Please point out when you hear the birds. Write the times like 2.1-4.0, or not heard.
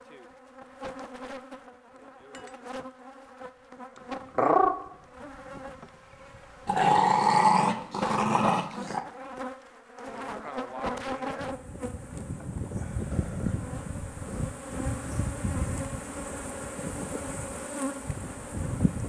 not heard.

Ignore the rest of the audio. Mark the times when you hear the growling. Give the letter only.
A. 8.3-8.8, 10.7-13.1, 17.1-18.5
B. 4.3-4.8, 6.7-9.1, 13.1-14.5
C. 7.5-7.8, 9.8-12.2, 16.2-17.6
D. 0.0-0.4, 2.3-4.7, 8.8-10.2
B.